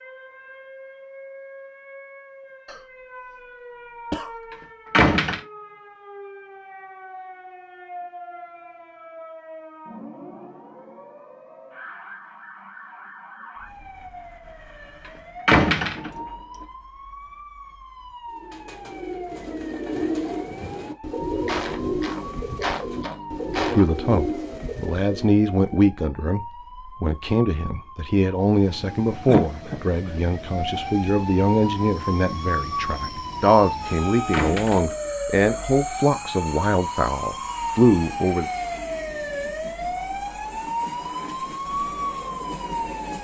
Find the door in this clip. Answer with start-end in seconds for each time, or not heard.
4.9-5.4, 15.4-16.2, 34.3-35.1.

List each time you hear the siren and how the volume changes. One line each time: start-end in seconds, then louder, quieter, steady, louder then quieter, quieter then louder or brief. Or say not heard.
0.0-43.1 louder.